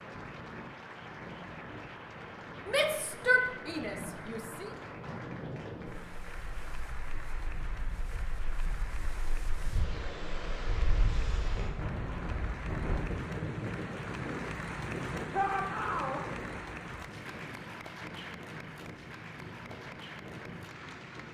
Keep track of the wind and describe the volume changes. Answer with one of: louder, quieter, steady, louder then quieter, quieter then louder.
louder then quieter.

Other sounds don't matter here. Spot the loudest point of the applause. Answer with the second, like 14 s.
15 s.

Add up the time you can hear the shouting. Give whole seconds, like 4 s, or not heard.
3 s.